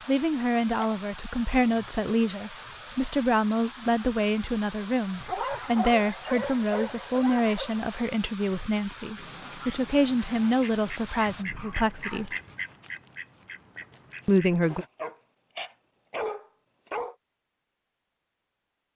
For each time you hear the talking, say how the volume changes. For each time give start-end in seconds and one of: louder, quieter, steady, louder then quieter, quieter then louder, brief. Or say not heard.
0.1-12.3 steady
14.2-14.8 brief.